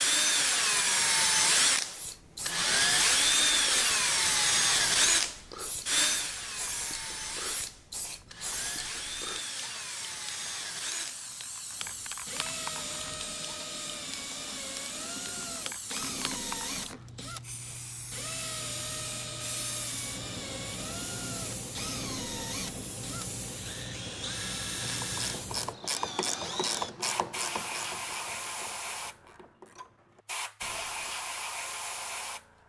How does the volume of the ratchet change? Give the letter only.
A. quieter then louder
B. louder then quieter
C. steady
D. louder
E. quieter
E.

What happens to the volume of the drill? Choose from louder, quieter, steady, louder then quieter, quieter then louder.
quieter.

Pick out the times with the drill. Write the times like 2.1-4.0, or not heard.
0.0-26.9.